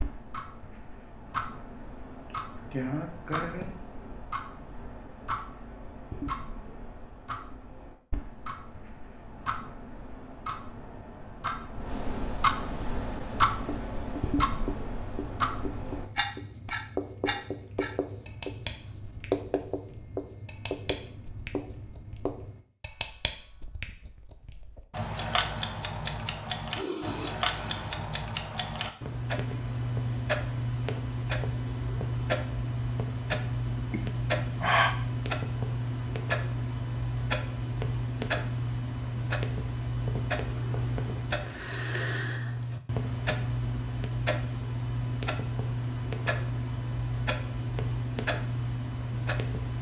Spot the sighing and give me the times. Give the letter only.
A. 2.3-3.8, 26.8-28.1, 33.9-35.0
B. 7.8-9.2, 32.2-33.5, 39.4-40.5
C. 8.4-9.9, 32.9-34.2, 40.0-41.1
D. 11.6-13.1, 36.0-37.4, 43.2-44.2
A.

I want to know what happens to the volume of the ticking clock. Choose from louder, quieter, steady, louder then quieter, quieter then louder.
louder.